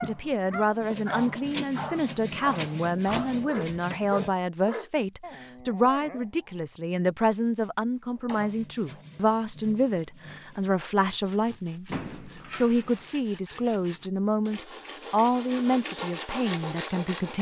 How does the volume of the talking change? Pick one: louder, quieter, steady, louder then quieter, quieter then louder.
steady.